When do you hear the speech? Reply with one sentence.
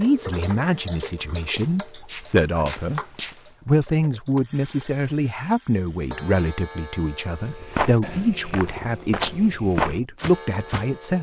You can hear the speech from 0.0 to 3.0 s and from 3.6 to 11.1 s.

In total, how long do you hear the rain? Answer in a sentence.
You can't hear the rain here.